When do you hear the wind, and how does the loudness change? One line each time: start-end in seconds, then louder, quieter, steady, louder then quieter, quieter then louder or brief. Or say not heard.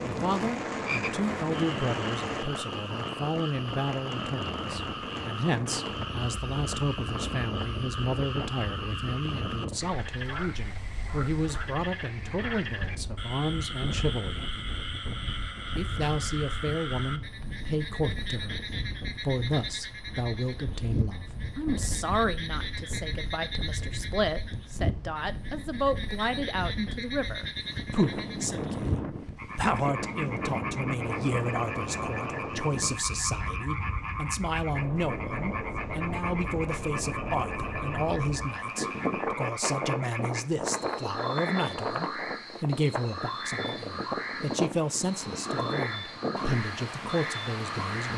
0.0-48.1 quieter then louder.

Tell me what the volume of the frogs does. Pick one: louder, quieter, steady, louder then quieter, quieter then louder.
steady.